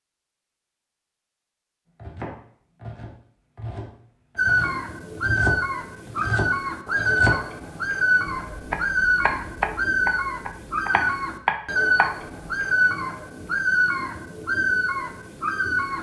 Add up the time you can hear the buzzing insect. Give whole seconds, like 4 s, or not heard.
not heard.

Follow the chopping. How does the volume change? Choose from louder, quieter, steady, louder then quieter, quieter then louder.
louder.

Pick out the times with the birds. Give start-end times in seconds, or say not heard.
4.3-15.9.